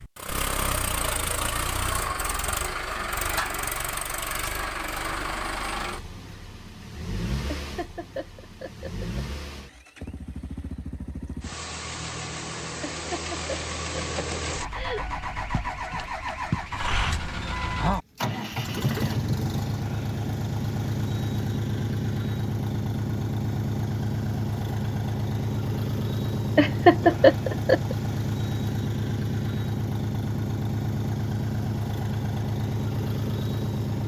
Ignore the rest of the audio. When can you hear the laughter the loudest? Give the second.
27 s.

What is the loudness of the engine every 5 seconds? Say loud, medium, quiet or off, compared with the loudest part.
loud, medium, medium, loud, loud, loud, loud.